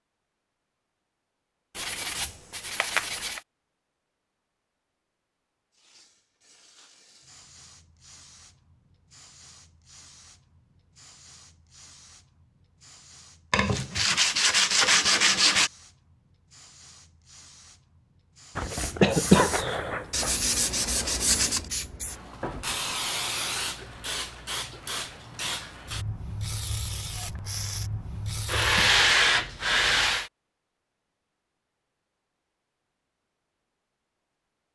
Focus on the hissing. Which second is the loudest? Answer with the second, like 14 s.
23 s.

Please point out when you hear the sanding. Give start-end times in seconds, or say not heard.
1.8-3.4, 13.5-15.7, 20.1-21.6, 28.4-30.3.